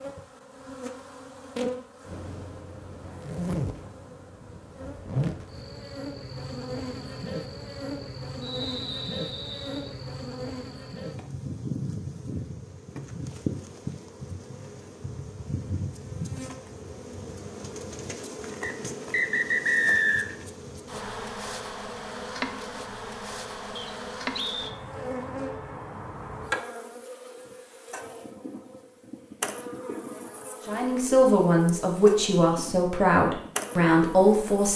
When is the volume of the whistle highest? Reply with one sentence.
The volume of the whistle peaks at 20 seconds.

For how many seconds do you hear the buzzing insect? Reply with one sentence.
The buzzing insect can be heard for 35 seconds in total.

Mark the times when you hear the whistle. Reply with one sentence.
The whistle can be heard from 8.4 to 9.9 s, from 18.6 to 20.4 s and from 23.8 to 24.8 s.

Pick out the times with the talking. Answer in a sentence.
The talking can be heard from 30.6 to 34.7 s.